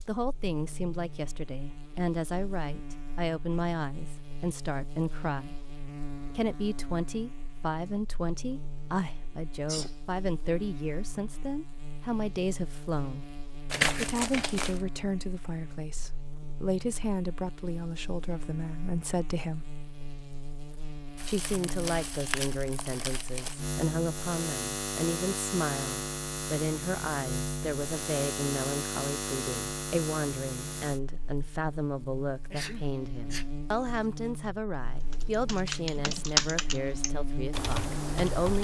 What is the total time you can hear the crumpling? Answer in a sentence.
You can hear the crumpling for 4 seconds altogether.